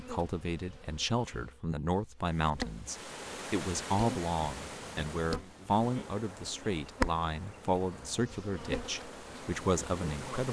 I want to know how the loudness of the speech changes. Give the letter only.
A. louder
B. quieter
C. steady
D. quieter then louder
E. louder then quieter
C.